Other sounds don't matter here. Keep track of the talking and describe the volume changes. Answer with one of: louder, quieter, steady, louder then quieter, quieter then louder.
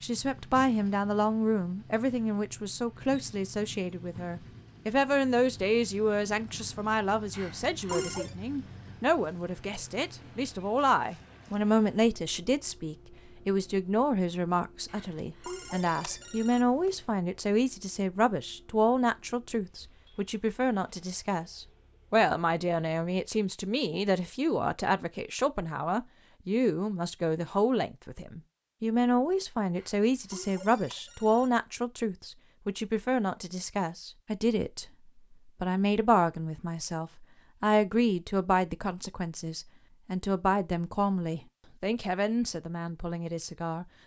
steady.